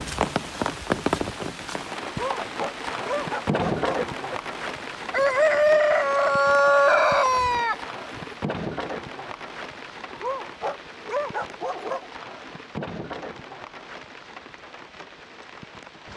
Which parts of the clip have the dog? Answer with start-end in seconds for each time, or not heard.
2.0-4.0, 10.1-12.1.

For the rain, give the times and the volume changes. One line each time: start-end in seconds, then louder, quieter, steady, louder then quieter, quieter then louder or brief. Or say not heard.
0.0-16.1 quieter.